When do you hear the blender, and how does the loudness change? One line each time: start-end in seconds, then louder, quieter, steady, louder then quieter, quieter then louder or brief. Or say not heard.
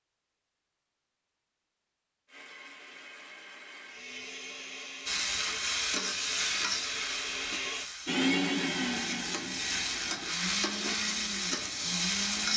2.2-12.5 louder then quieter.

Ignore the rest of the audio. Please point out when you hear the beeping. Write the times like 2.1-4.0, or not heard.
not heard.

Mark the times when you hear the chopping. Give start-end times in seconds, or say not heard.
not heard.